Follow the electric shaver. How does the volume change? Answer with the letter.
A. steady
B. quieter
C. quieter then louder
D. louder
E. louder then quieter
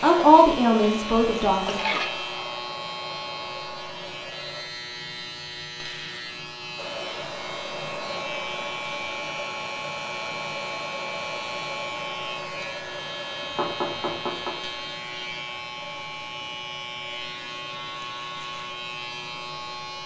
A.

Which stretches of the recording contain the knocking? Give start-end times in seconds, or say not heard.
13.4-14.6.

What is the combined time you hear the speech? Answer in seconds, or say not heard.
2 s.